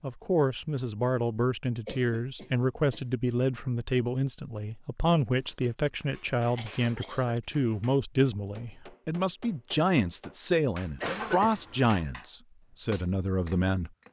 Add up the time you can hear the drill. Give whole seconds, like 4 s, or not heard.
not heard.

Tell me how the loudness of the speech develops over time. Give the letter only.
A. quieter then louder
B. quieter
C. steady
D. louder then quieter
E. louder
C.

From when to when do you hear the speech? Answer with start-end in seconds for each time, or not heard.
0.0-13.9.